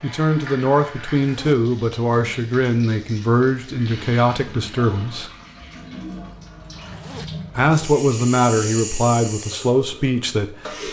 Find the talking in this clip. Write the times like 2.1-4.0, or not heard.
0.0-5.3, 7.5-10.7.